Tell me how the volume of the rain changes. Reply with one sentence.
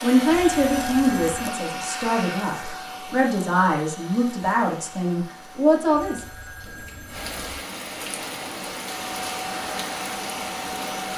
The volume of the rain goes up.